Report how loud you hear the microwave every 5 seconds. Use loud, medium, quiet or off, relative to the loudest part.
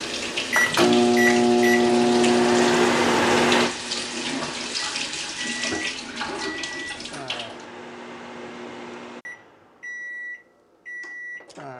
loud, quiet, quiet.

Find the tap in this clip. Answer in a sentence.
The tap can be heard from 0.0 to 7.7 s.